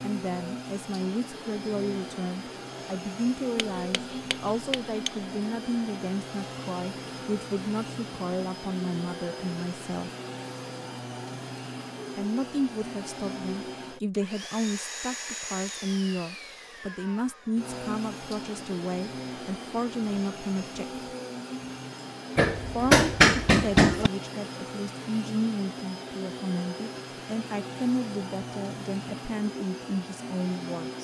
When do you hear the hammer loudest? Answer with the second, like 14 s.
23 s.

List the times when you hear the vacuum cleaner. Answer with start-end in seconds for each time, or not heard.
0.0-30.9.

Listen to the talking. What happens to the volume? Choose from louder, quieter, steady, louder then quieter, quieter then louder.
steady.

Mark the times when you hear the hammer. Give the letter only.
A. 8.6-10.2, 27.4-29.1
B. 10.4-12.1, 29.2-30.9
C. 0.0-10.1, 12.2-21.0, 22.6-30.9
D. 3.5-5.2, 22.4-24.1
D.